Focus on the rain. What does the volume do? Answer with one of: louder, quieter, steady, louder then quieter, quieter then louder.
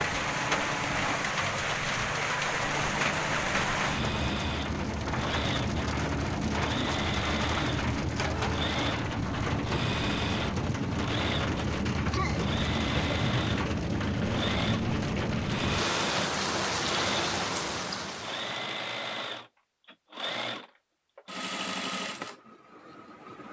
steady.